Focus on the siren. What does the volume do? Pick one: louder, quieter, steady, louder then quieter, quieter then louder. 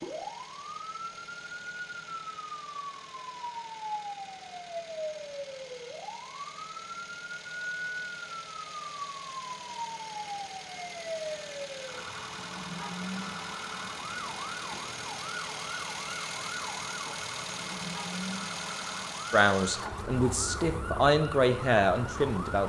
steady.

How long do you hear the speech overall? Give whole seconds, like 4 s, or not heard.
3 s.